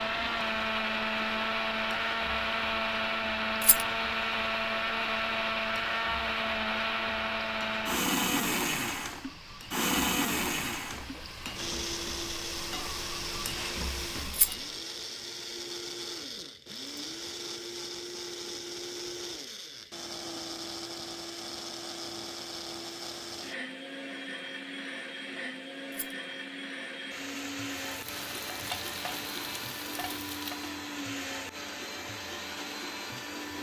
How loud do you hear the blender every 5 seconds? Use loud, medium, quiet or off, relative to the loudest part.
loud, loud, medium, medium, medium, medium, medium.